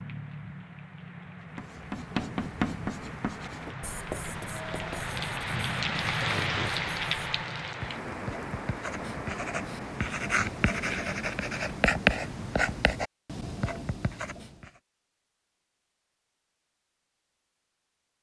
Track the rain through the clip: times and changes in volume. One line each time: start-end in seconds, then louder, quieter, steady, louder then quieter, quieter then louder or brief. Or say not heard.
0.0-13.0 louder then quieter.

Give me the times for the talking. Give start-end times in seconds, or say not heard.
not heard.